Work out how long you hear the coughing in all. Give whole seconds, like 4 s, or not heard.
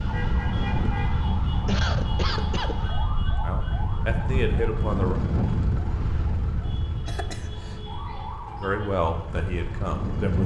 2 s.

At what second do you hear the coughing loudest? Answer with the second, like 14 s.
2 s.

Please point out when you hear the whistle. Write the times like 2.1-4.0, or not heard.
not heard.